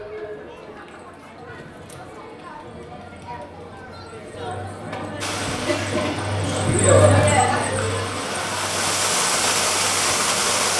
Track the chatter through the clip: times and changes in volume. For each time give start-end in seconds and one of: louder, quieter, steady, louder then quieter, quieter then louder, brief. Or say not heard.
0.0-10.7 louder then quieter.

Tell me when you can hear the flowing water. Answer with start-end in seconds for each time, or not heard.
5.2-10.7.